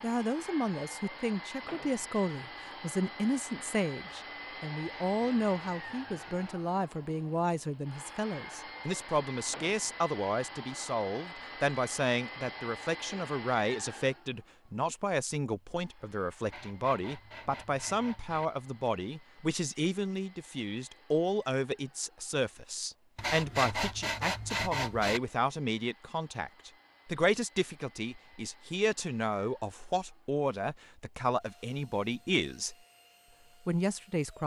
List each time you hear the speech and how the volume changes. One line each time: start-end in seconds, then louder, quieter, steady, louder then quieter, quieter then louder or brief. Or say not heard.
0.0-32.8 steady
33.6-34.4 brief.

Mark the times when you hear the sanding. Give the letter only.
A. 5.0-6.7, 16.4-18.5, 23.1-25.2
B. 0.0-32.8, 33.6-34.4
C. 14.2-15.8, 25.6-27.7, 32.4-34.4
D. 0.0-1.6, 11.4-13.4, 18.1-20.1
A.